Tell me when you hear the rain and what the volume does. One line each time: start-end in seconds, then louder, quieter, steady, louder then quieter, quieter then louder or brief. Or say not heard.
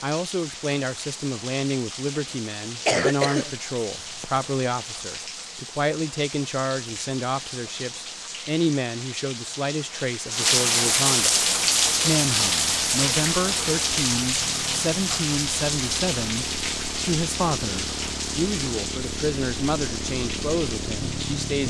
0.0-21.6 louder then quieter.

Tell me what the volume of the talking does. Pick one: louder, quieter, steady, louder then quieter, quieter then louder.
steady.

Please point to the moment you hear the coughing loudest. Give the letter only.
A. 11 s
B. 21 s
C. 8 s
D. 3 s
D.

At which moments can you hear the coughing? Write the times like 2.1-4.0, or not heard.
2.6-4.4.